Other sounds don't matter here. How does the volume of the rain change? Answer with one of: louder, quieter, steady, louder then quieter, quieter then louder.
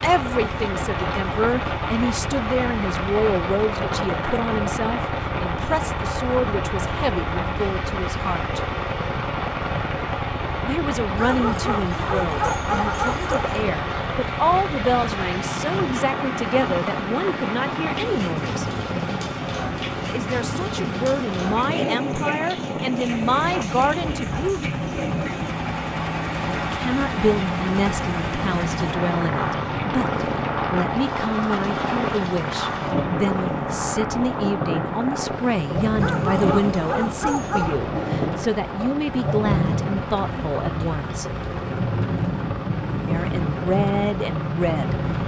steady.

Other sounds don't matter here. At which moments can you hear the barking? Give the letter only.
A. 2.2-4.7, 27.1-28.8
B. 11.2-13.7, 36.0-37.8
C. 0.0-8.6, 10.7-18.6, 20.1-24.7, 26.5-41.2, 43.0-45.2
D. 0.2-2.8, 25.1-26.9
B.